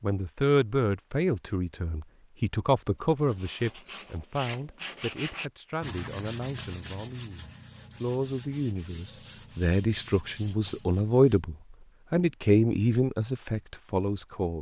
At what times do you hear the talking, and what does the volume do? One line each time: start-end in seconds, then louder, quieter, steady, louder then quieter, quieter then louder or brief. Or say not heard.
0.0-14.5 quieter then louder.